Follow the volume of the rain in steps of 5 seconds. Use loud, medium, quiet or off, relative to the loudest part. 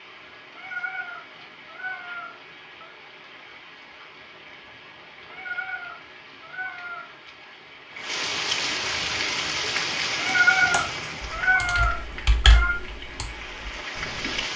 quiet, loud, loud.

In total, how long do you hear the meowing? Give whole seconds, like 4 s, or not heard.
7 s.